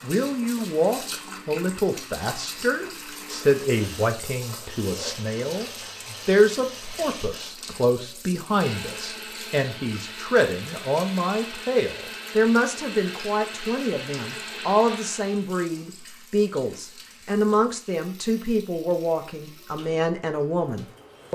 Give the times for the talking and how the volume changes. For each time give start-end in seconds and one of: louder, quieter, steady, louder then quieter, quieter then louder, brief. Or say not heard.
0.0-21.3 steady.